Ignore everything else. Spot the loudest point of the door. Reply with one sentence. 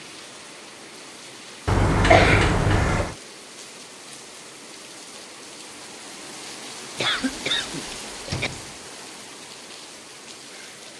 The volume of the door peaks at 2 seconds.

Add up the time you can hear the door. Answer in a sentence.
You can hear the door for 2 seconds altogether.